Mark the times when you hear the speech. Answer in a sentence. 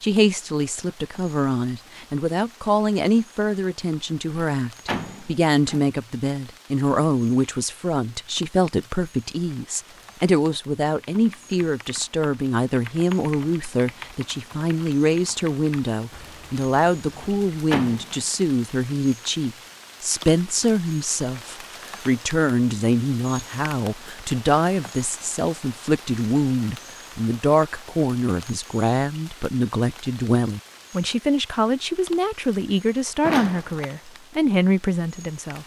The speech can be heard from 0.0 to 35.6 s.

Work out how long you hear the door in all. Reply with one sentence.
The door can be heard for 3 seconds in total.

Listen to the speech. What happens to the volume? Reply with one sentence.
The volume of the speech stays about the same.